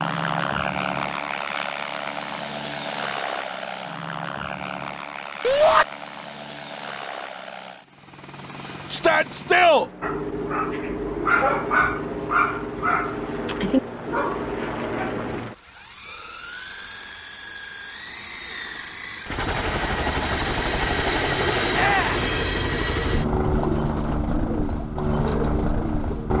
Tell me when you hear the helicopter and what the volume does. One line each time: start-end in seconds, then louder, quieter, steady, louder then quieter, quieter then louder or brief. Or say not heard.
0.0-26.3 quieter then louder.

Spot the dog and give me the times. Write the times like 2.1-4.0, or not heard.
10.0-15.4.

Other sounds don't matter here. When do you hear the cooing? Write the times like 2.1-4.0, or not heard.
23.1-26.3.